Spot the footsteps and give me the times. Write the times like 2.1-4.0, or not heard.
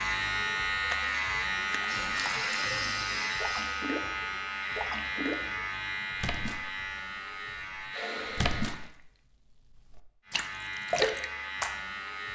not heard.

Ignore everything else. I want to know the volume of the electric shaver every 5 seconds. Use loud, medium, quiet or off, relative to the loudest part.
loud, medium, medium.